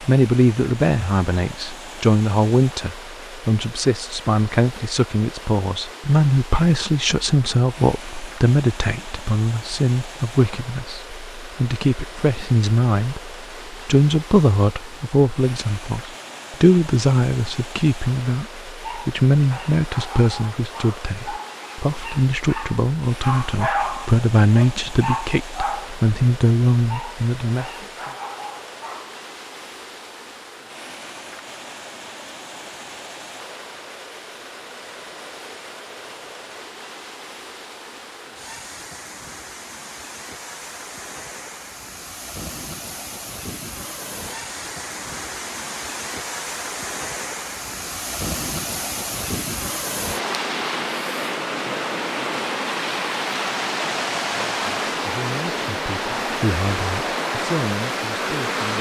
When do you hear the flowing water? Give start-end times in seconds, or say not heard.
0.0-58.7.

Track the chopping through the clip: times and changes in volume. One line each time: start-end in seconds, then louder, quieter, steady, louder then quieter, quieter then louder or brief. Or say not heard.
not heard.